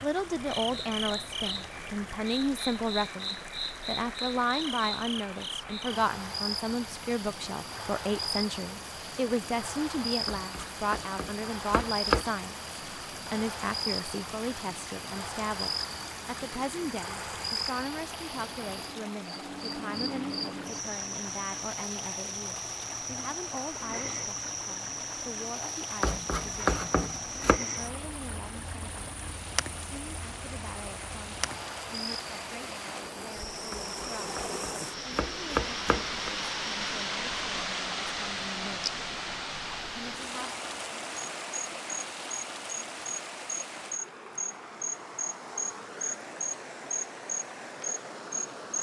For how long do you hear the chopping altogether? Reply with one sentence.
You can hear the chopping for 6 seconds altogether.